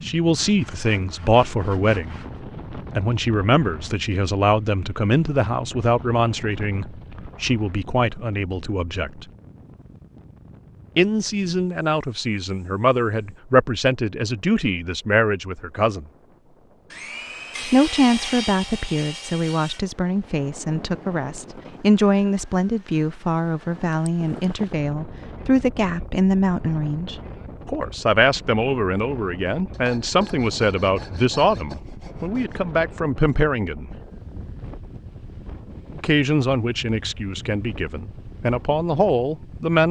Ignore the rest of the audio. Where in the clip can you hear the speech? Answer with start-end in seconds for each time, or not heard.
0.0-9.2, 10.9-16.1, 17.6-33.9, 36.0-39.8.